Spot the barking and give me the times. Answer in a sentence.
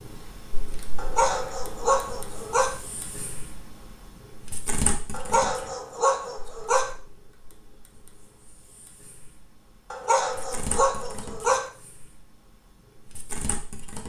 You can hear the barking from 0.9 to 2.8 s, from 5.1 to 7.0 s and from 9.9 to 11.7 s.